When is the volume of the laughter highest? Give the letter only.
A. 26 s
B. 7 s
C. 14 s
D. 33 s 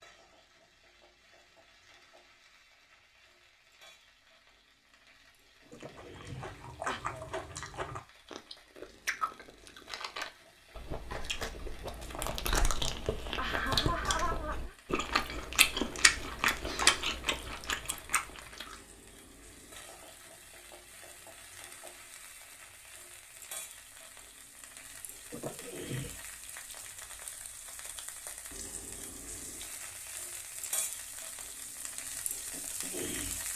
C.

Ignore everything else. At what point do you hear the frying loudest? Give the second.
33 s.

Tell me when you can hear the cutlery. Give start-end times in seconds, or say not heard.
not heard.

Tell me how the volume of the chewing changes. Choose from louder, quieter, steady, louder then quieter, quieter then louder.
louder.